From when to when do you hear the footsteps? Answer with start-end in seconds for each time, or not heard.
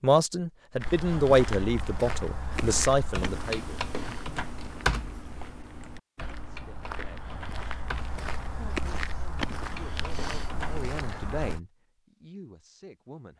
0.8-11.6.